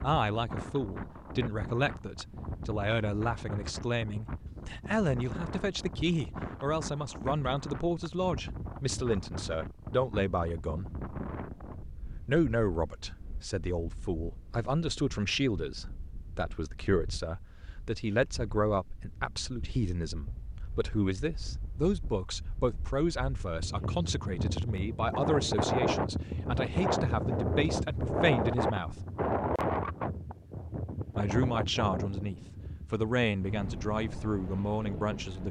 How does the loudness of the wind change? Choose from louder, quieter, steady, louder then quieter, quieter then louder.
quieter then louder.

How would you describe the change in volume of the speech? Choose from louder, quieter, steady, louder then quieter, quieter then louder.
steady.